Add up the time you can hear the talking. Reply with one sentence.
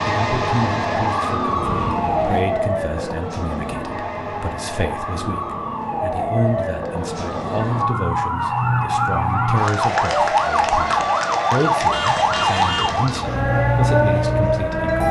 The talking can be heard for 15 seconds in total.